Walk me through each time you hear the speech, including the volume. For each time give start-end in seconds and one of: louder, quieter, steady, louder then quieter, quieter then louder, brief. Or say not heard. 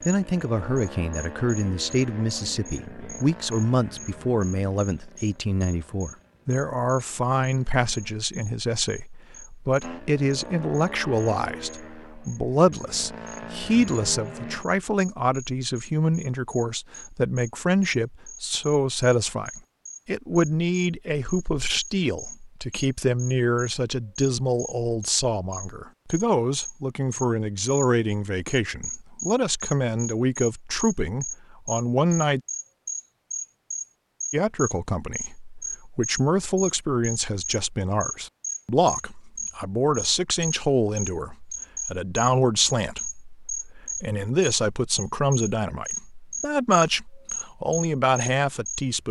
0.1-32.4 steady
34.3-49.0 steady.